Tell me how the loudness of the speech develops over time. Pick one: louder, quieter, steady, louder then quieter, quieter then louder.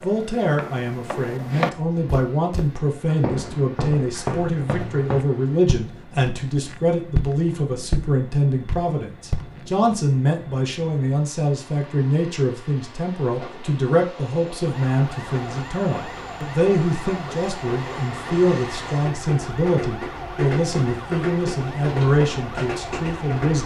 steady.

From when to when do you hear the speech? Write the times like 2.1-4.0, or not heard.
0.0-23.6.